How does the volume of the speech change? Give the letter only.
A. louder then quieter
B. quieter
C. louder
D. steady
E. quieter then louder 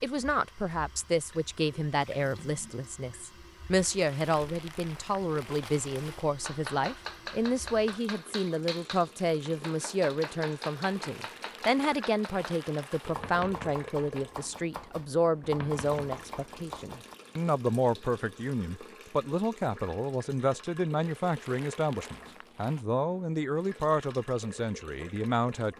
D.